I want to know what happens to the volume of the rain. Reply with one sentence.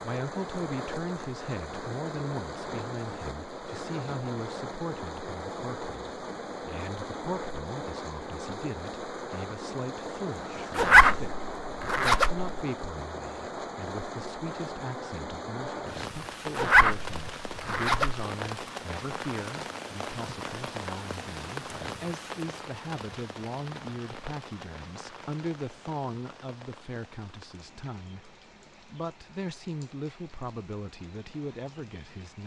The loudness of the rain goes down.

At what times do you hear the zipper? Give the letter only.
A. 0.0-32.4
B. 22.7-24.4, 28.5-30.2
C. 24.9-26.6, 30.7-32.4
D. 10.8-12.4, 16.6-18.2
D.